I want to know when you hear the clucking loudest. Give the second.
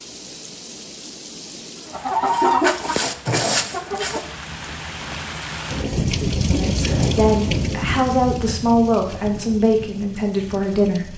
3 s.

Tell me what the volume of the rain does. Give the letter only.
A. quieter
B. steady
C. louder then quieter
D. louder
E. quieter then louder
C.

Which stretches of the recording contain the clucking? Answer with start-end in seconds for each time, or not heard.
1.9-4.3.